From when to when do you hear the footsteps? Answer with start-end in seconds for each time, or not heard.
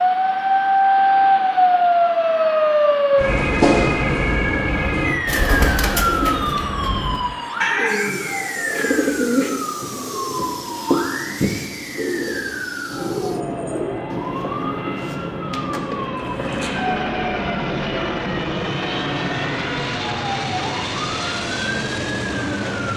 not heard.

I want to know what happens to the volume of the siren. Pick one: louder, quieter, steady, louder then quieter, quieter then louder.
quieter.